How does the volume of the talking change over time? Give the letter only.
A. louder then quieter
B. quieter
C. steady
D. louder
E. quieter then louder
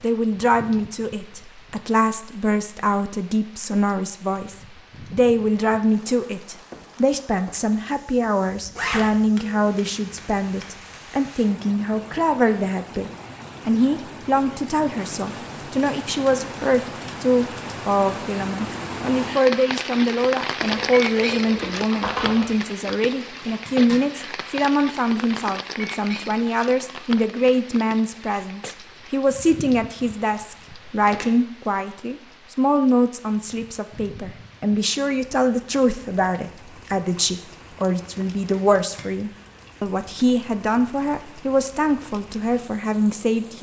C.